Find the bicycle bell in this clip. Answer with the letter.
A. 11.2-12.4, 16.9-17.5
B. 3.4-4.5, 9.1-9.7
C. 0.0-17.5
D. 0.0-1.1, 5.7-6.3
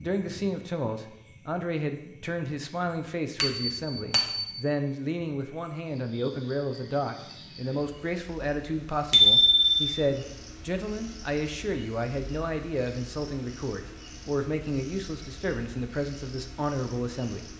B.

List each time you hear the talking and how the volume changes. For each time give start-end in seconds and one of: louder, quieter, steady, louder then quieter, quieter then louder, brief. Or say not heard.
0.0-17.5 steady.